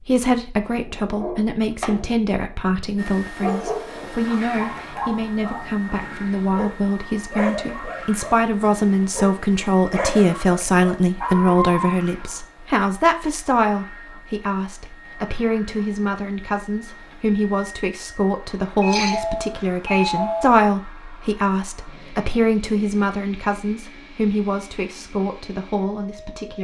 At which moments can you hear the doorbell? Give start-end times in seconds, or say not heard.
18.8-20.6.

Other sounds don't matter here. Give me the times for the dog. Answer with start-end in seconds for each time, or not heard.
0.7-2.5, 3.4-11.9.